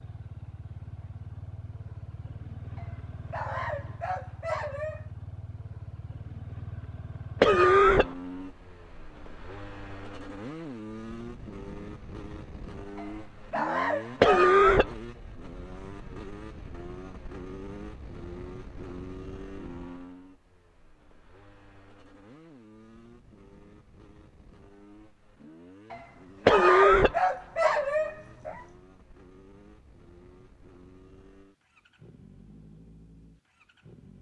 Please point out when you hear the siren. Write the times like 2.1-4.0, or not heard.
not heard.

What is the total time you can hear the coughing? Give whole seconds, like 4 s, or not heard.
2 s.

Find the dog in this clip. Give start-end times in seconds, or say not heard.
2.8-5.0, 12.9-14.6, 25.9-28.6.